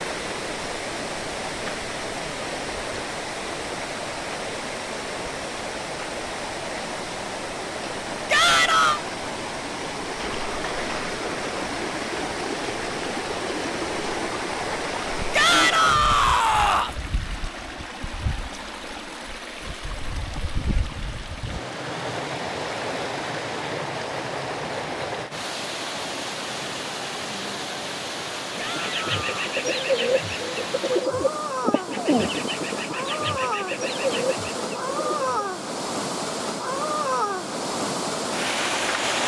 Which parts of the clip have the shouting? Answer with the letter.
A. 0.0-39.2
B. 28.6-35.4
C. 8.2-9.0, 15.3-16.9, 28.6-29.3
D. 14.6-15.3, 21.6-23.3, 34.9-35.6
C.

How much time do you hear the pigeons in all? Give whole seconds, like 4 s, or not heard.
7 s.